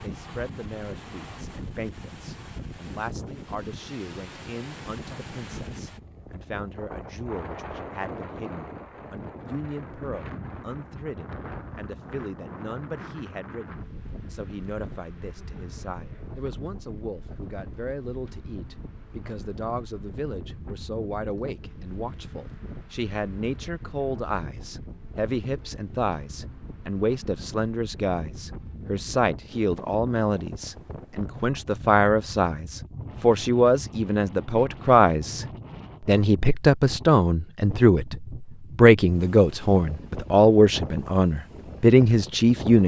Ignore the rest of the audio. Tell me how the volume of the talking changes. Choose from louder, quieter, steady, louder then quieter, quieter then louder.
louder.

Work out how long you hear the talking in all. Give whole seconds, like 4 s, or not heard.
43 s.